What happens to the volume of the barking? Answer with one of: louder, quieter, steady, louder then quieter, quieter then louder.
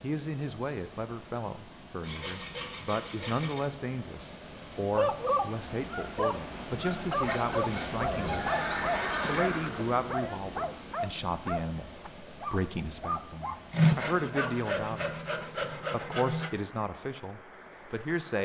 quieter.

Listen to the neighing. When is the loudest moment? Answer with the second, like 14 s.
9 s.